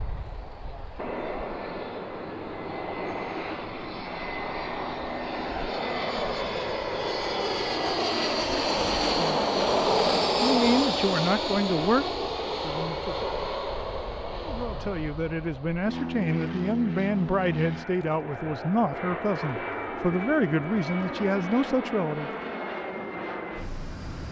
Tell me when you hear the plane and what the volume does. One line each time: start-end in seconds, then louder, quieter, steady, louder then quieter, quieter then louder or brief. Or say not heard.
0.0-24.2 louder then quieter.